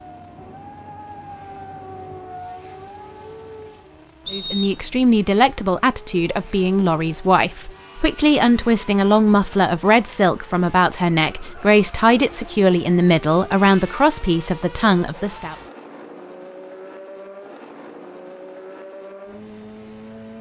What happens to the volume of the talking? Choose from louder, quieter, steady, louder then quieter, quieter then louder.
steady.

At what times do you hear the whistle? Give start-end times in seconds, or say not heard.
4.2-4.9.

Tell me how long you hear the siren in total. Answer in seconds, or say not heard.
4 s.